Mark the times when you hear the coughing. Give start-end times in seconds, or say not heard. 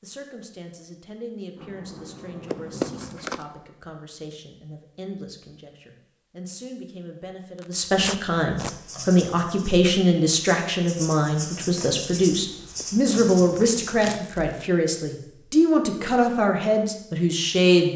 not heard.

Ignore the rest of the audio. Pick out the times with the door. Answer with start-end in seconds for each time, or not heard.
1.6-3.2.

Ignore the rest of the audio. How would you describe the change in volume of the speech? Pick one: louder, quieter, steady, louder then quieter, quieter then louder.
louder.